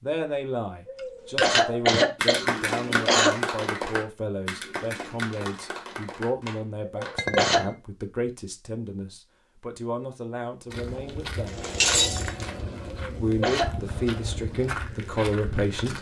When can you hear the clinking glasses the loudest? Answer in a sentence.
The volume of the clinking glasses peaks at 12 seconds.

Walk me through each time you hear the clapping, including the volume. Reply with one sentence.
You can hear the clapping from 2.1 to 7.2 s, getting quieter.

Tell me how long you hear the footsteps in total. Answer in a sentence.
The footsteps can be heard for 5 seconds in total.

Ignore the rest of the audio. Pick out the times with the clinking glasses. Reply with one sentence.
You can hear the clinking glasses from 1.4 to 2.0 s, from 7.2 to 7.8 s and from 11.4 to 12.4 s.